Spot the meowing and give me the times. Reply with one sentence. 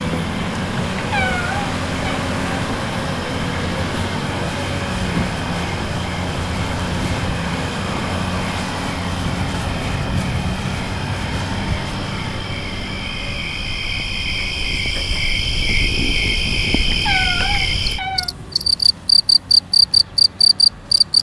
You can hear the meowing from 0.9 to 2.2 s and from 16.9 to 18.4 s.